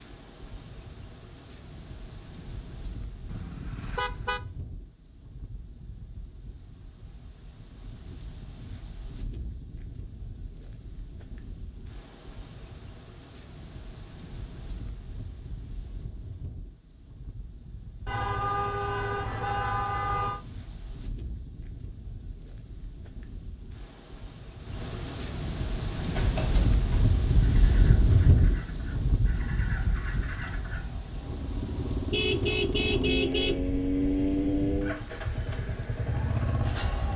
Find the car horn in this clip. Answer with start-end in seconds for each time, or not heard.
3.2-4.4, 18.1-20.4, 32.1-33.6.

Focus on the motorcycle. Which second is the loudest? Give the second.
34 s.